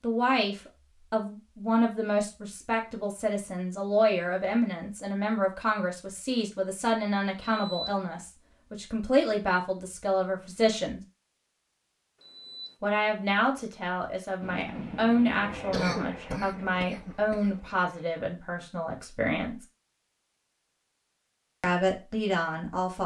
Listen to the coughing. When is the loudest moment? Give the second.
16 s.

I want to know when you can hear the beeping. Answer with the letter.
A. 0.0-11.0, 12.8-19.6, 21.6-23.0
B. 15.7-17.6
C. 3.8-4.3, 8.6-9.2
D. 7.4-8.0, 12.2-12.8
D.